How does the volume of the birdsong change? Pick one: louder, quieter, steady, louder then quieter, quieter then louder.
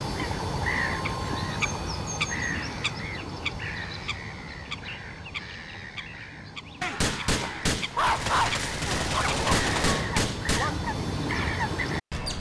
quieter then louder.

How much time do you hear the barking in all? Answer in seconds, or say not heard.
2 s.